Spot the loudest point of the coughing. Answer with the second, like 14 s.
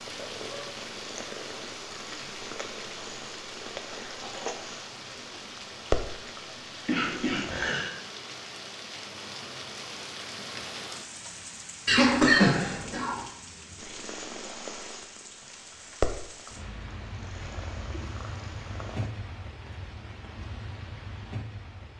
12 s.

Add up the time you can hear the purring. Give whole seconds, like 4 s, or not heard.
13 s.